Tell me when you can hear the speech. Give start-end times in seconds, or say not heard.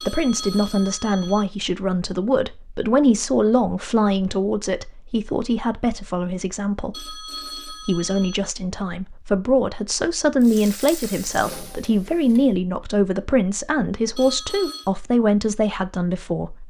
0.0-16.6.